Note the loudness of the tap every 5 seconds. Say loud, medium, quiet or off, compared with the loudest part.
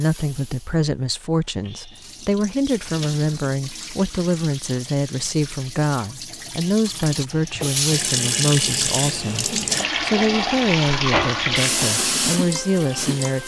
quiet, loud, loud.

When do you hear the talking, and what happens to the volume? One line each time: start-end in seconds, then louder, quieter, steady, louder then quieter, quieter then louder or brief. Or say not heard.
0.0-13.4 steady.